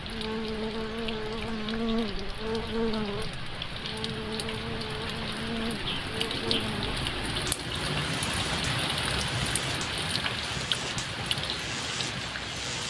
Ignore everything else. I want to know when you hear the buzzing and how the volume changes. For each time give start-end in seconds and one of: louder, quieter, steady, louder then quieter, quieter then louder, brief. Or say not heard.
0.0-12.8 quieter.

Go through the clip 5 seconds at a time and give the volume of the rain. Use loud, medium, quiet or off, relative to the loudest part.
medium, loud, loud.